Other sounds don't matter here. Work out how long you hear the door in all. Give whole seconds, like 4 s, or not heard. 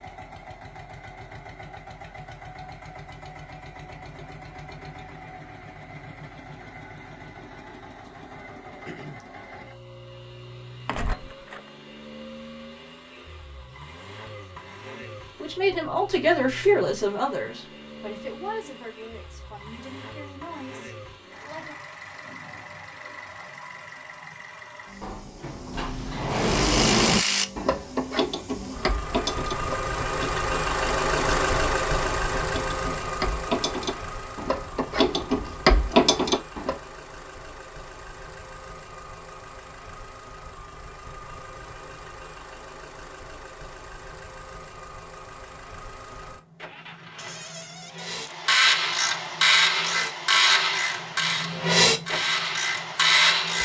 4 s.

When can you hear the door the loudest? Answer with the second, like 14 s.
27 s.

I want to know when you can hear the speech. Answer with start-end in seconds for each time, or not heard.
15.3-21.8.